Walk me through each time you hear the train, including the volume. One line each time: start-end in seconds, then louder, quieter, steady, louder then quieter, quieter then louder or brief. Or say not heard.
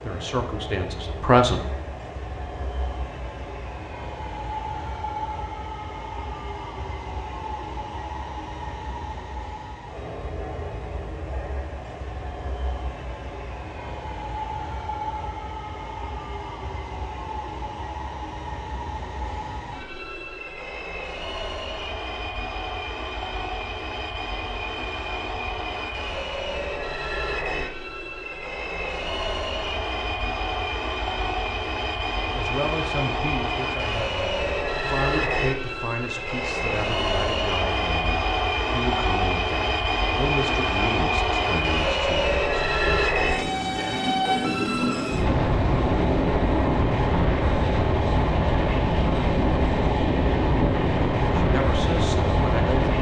0.0-52.9 louder.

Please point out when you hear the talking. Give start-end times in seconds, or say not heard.
0.0-1.7, 32.3-43.7, 51.4-52.9.